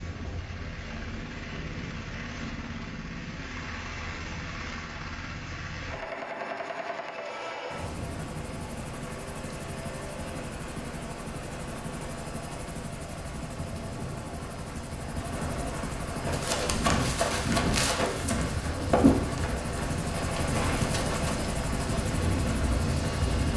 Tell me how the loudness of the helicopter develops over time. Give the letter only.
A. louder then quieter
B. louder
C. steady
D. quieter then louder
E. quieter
B.